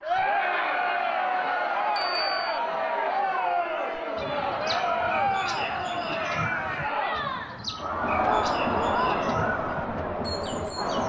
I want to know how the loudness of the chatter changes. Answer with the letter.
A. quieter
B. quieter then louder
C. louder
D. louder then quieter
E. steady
E.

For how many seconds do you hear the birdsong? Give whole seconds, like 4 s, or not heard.
7 s.